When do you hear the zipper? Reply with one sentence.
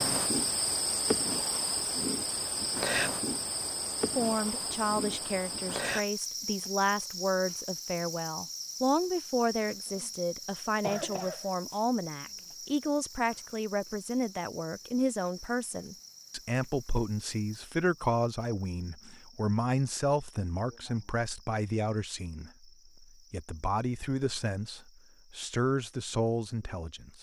You can't hear the zipper here.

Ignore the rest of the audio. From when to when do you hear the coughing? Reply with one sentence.
The coughing can be heard from 10.7 to 11.5 s.